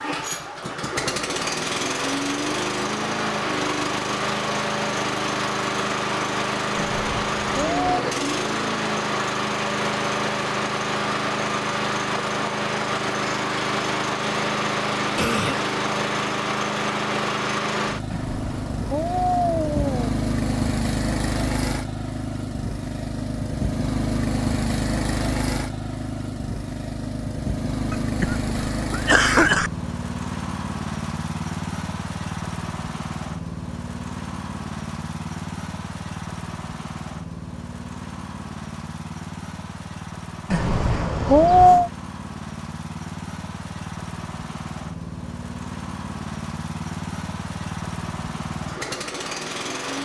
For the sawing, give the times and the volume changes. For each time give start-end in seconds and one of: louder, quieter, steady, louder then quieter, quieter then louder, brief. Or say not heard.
not heard.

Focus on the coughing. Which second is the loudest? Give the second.
29 s.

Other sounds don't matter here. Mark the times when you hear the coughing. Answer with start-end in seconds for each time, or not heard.
15.2-15.6, 27.9-29.7.